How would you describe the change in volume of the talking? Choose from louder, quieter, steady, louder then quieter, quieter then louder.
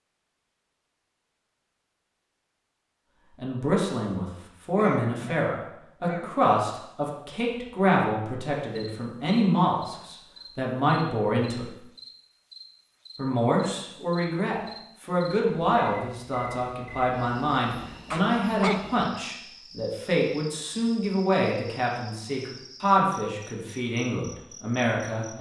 steady.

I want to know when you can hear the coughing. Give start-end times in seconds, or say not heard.
4.8-6.3, 18.1-18.9.